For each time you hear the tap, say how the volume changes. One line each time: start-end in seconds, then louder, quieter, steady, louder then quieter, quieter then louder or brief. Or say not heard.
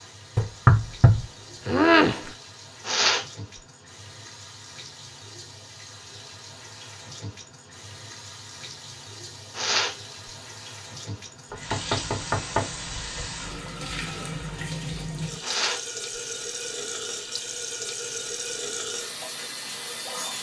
0.0-20.3 louder.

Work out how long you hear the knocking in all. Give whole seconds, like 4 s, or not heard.
4 s.